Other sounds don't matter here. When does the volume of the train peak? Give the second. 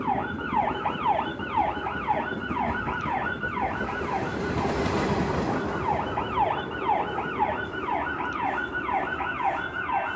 5 s.